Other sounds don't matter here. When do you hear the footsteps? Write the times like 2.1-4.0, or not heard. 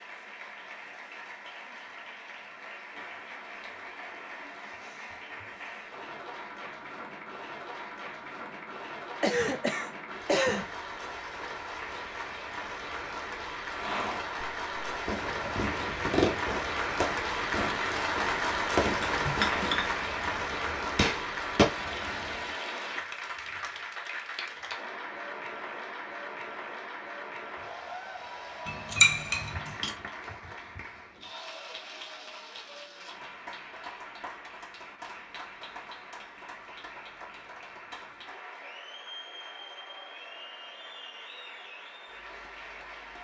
not heard.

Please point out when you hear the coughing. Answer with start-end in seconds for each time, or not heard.
9.2-10.7.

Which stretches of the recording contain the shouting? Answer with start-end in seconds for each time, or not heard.
not heard.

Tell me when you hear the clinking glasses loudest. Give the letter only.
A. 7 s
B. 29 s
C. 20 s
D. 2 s
B.